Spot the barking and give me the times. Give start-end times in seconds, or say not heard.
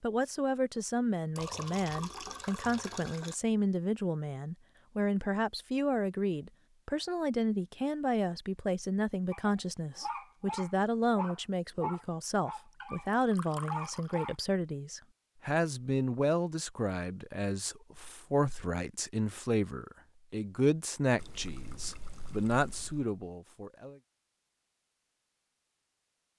9.3-14.3.